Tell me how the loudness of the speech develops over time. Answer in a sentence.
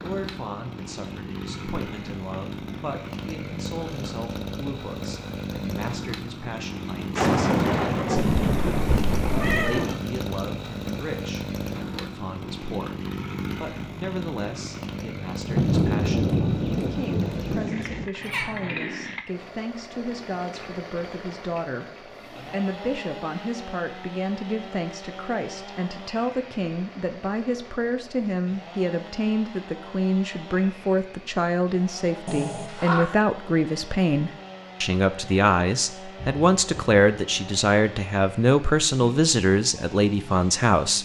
The loudness of the speech goes up.